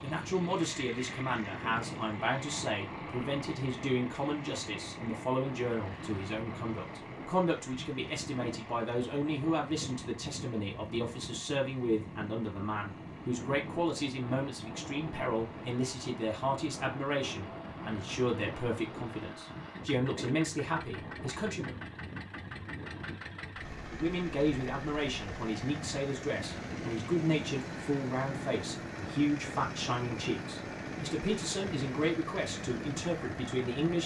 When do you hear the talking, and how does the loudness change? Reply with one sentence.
The talking can be heard from 0.0 to 21.8 s, at a steady volume; and from 23.9 to 34.0 s, at a steady volume.